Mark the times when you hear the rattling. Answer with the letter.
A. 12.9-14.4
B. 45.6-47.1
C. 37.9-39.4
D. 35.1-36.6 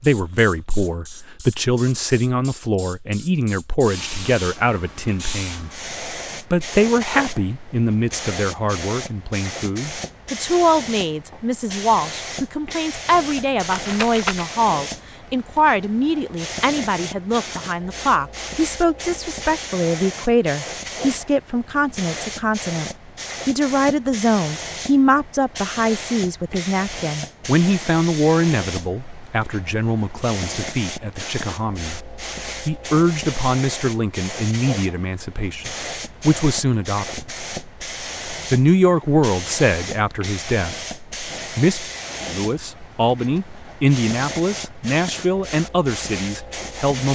A.